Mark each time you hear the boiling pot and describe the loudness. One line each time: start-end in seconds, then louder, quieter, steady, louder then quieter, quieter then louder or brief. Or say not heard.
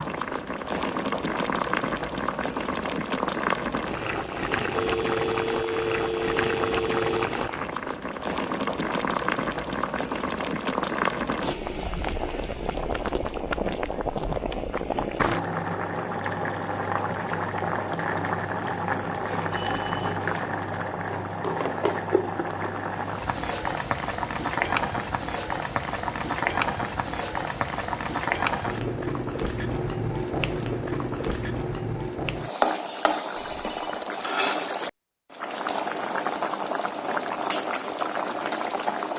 0.0-39.1 steady.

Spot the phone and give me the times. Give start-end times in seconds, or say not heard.
4.7-7.3, 19.5-20.2, 33.4-34.0.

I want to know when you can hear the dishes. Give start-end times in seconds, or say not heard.
not heard.